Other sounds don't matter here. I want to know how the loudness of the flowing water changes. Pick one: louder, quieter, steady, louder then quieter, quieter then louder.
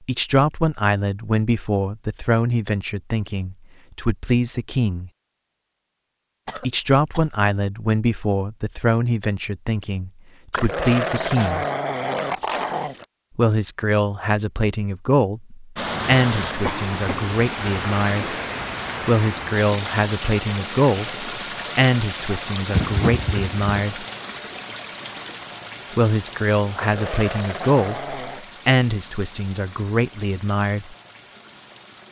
quieter.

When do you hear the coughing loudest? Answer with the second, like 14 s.
23 s.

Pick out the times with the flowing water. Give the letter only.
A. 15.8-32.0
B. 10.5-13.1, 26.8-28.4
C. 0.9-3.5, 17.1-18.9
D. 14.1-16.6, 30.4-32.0
A.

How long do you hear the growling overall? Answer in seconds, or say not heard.
4 s.